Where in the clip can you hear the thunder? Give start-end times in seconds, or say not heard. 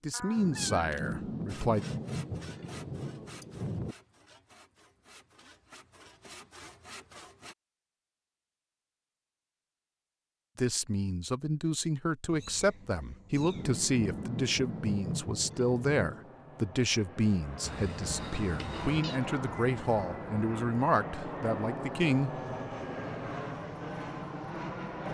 0.3-4.0, 13.3-16.4.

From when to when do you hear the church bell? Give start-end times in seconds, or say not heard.
not heard.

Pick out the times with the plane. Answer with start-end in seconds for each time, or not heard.
13.4-25.1.